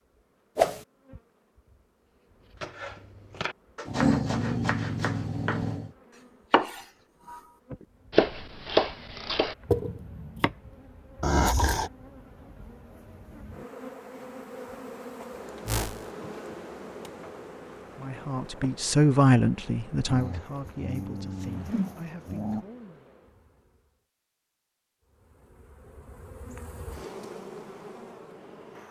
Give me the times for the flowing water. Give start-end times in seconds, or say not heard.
not heard.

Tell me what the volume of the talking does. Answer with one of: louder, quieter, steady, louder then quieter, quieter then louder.
quieter.